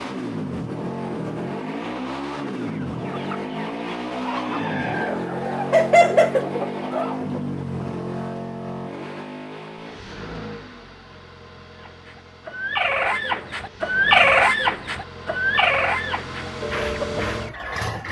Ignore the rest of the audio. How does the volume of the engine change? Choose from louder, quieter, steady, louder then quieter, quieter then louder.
quieter then louder.